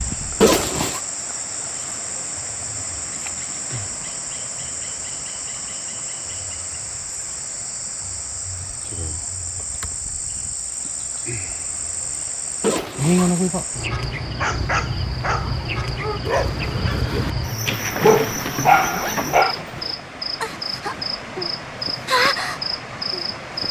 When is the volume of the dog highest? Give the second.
19 s.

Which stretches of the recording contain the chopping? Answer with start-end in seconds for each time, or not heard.
not heard.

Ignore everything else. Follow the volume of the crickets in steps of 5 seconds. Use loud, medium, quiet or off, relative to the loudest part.
medium, medium, loud, loud, loud.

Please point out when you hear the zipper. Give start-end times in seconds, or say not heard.
0.4-1.0, 12.6-13.4, 18.0-19.9.